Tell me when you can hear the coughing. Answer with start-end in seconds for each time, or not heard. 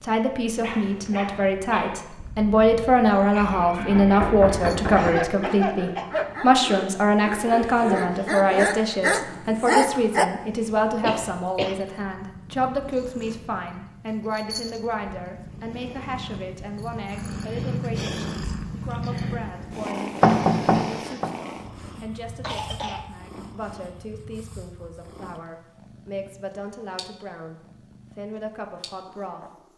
5.0-6.4, 11.0-11.8, 22.4-23.1.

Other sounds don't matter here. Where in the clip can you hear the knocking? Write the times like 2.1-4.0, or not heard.
3.4-5.2, 20.2-21.3.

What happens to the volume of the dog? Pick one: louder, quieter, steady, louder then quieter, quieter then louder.
louder.